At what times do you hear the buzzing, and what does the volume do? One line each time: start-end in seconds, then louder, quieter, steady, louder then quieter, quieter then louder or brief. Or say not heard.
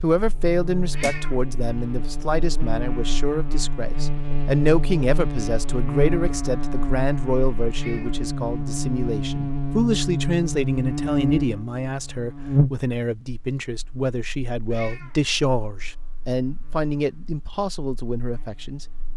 0.0-19.1 louder then quieter.